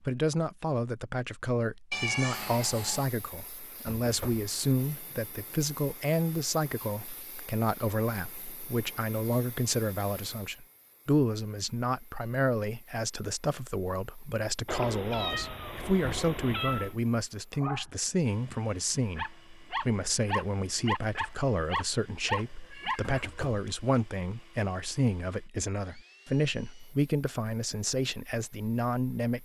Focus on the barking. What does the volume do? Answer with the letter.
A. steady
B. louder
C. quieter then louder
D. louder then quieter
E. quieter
B.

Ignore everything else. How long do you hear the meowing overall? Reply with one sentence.
The meowing can be heard for 5 seconds in total.